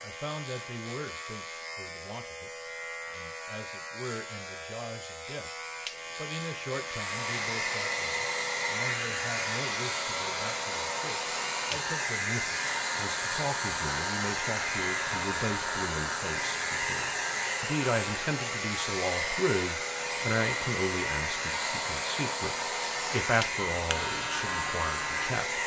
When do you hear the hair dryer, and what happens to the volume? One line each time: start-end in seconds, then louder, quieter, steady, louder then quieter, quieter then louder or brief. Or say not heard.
6.8-25.6 steady.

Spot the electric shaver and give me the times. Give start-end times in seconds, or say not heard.
0.0-25.6.